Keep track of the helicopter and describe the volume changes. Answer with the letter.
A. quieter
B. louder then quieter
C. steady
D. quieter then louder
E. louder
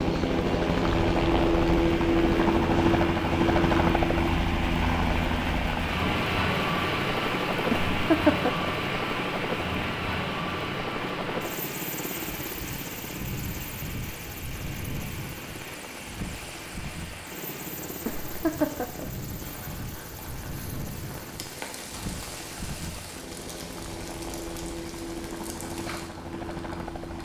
A.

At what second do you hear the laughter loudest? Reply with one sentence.
The loudest moment of the laughter is at 8 seconds.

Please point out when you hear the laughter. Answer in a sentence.
You can hear the laughter from 7.7 to 8.7 s and from 18.1 to 19.1 s.